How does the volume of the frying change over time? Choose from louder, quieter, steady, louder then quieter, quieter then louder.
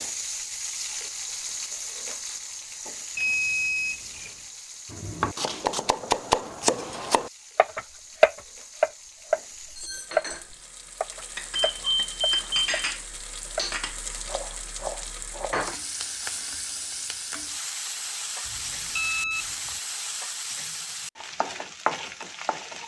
quieter then louder.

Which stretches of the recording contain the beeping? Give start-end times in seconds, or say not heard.
3.1-4.3, 11.6-12.7, 18.4-19.8.